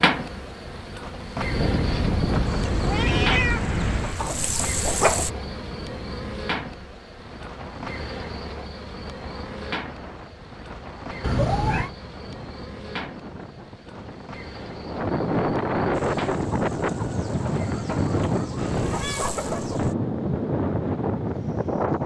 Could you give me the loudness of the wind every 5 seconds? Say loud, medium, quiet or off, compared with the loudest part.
loud, quiet, quiet, loud, loud.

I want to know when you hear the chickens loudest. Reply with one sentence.
The volume of the chickens peaks at 5 seconds.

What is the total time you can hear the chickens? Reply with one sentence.
You can hear the chickens for 7 seconds altogether.